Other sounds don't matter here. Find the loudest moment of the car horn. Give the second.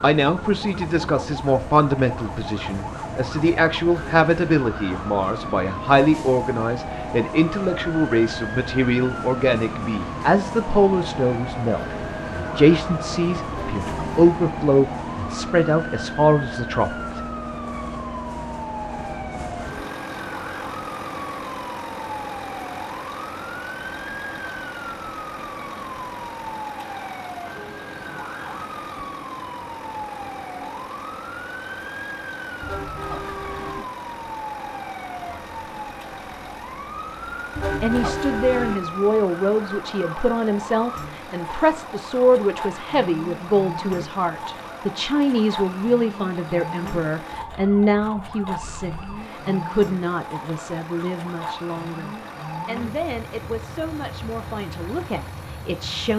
38 s.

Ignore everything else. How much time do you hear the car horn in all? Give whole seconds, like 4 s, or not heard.
3 s.